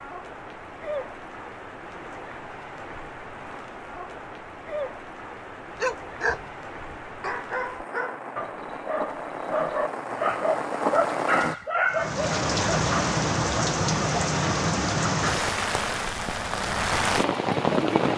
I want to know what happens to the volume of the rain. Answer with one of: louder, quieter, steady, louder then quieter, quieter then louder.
louder.